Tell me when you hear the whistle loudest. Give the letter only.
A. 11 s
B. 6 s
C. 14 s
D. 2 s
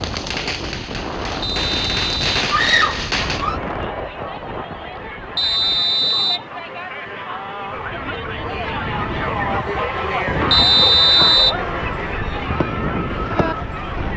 A.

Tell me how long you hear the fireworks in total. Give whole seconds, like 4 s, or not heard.
7 s.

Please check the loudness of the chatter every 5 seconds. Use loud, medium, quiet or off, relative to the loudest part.
medium, loud, loud.